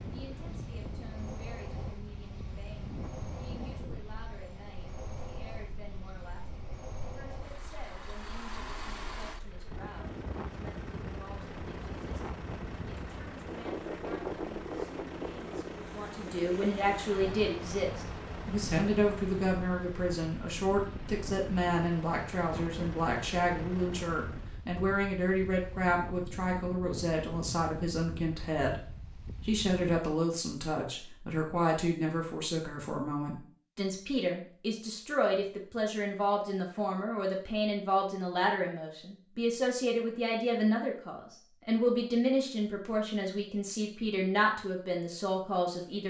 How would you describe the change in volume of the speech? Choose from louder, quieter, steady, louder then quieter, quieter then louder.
louder.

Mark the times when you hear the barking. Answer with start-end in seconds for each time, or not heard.
not heard.